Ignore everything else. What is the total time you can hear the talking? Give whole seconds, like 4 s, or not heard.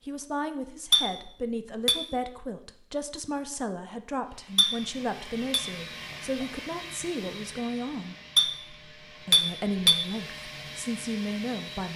11 s.